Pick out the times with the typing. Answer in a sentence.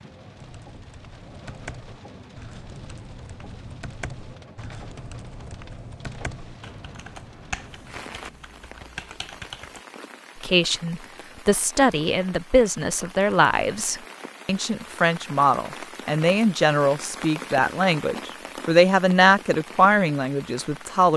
The typing can be heard from 0.3 to 9.8 s.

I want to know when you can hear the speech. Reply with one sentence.
You can hear the speech from 10.4 to 21.1 s.